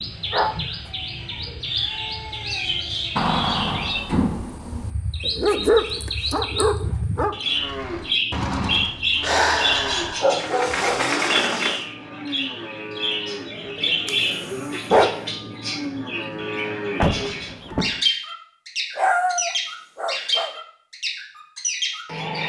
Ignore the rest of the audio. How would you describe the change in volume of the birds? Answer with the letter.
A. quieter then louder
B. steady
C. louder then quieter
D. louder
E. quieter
B.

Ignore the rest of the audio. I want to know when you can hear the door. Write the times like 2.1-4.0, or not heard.
3.1-4.9, 10.3-11.8, 17.0-18.0.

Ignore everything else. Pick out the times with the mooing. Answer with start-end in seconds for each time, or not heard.
7.5-17.9.